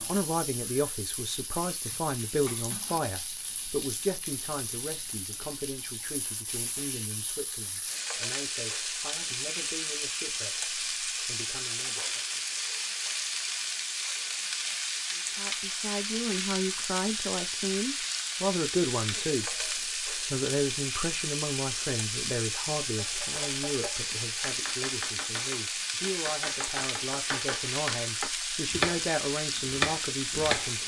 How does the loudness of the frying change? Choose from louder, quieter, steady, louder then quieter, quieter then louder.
louder.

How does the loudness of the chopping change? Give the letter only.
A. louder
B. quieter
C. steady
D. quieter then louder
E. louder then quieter
A.